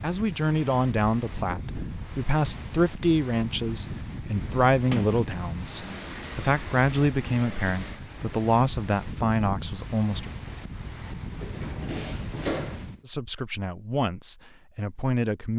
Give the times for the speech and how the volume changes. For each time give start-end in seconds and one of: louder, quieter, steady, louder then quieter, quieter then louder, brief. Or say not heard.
0.0-10.3 steady
13.1-15.5 brief.